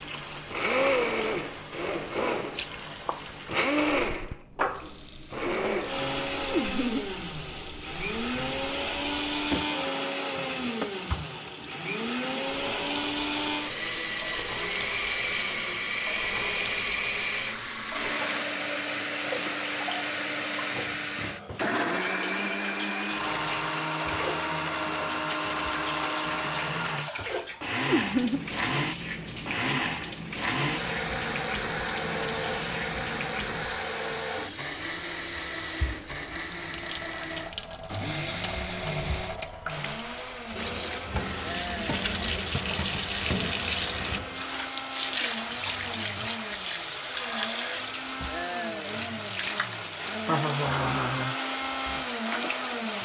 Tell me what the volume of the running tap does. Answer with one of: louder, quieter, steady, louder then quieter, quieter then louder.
louder.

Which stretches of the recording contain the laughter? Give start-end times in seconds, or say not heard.
6.5-7.1, 27.9-28.4, 50.2-51.4.